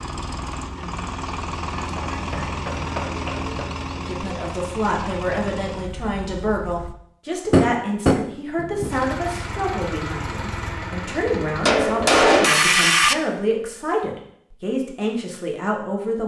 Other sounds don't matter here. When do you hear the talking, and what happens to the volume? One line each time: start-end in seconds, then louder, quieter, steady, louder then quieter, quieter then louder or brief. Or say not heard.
4.0-16.2 steady.